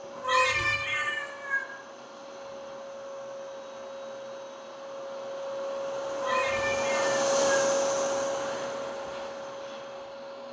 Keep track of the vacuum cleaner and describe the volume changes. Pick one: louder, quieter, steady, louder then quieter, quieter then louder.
louder then quieter.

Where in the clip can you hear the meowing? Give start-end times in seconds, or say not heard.
0.1-1.6, 6.1-7.7.